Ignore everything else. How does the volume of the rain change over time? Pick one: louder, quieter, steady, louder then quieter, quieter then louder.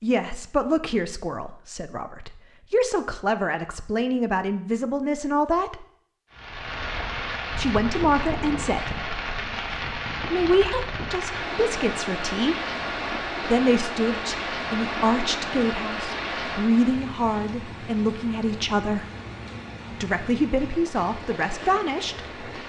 quieter.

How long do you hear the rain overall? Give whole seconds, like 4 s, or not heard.
16 s.